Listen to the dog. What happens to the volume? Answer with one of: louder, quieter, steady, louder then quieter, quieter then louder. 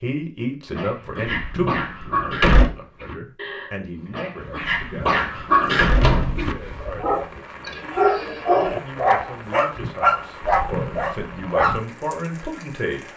louder.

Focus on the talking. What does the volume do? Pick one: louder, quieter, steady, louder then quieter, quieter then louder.
quieter then louder.